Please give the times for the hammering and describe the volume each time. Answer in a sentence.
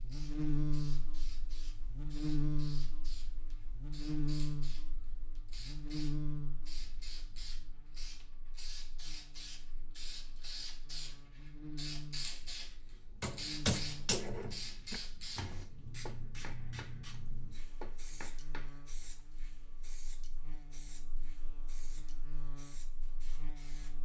The hammering can be heard from 13.2 to 19.2 s, getting quieter then louder.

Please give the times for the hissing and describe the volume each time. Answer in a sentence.
You can hear the hissing from 0.0 to 24.0 s, getting louder then quieter.